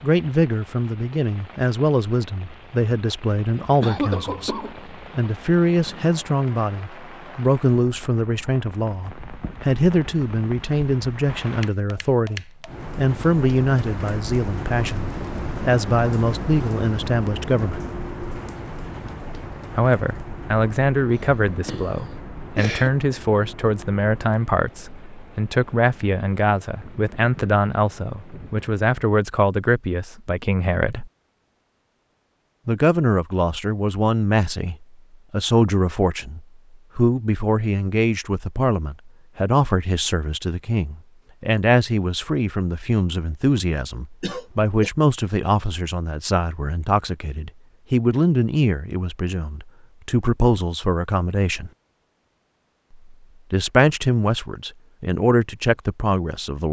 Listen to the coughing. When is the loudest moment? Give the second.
4 s.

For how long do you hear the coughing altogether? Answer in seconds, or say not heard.
4 s.